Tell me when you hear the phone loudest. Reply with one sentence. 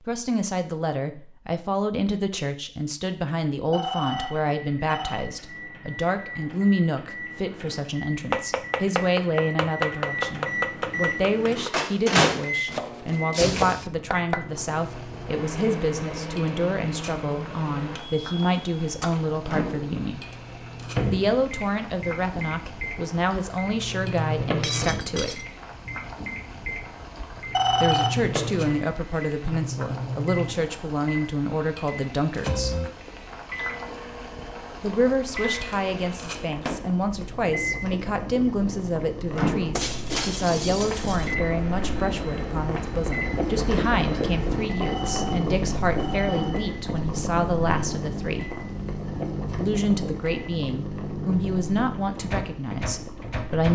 The loudest moment of the phone is at 28 seconds.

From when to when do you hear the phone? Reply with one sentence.
The phone can be heard from 3.7 to 5.2 s, from 27.5 to 28.2 s and from 44.8 to 46.6 s.